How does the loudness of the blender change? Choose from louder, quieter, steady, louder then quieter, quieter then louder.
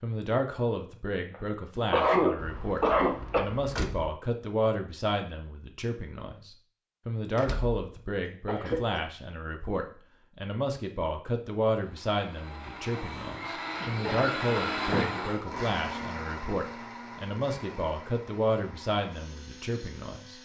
louder then quieter.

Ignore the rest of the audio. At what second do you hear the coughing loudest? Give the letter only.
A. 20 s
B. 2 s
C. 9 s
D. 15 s
B.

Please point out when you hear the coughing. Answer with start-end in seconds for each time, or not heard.
1.3-3.5, 8.4-9.1, 13.8-14.8.